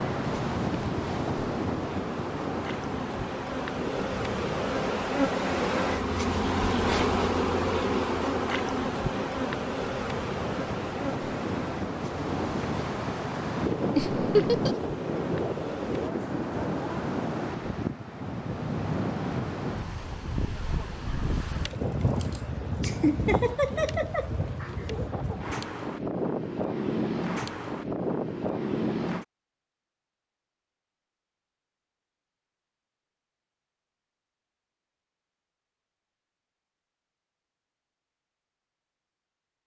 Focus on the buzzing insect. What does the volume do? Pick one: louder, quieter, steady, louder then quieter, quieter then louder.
louder then quieter.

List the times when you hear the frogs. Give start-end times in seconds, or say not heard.
not heard.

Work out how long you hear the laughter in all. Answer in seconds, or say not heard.
3 s.